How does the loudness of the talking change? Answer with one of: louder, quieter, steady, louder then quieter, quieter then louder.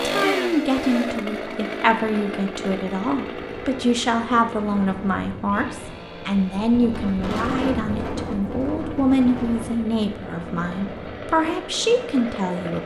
steady.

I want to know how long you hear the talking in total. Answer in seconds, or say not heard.
13 s.